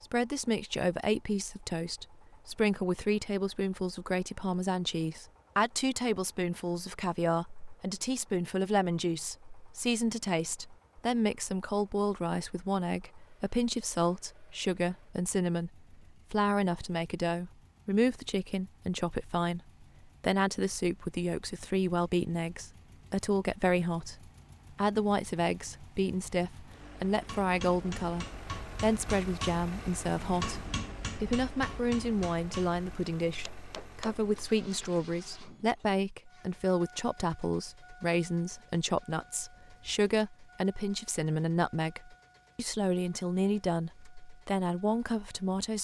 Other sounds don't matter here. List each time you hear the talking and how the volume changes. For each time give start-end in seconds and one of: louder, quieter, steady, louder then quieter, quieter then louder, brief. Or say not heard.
0.0-45.7 steady.